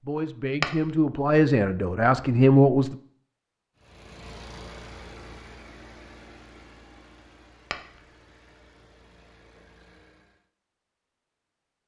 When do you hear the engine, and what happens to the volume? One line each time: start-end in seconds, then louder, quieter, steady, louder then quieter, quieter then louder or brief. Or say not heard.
3.8-10.5 quieter.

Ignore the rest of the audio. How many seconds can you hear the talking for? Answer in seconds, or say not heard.
3 s.